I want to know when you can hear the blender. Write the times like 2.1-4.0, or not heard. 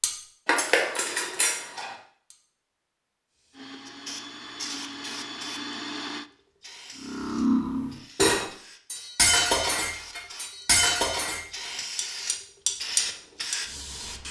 3.5-6.3.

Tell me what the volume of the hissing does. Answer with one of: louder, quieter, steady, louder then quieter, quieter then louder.
quieter then louder.